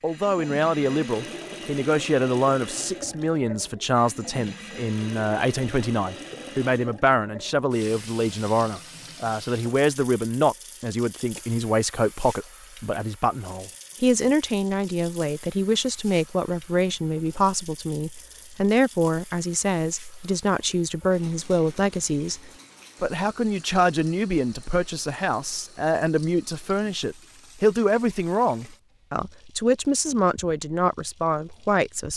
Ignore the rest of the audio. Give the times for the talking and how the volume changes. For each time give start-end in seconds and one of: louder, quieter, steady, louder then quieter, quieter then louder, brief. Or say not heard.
0.0-32.1 steady.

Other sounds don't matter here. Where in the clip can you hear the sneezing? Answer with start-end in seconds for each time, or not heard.
not heard.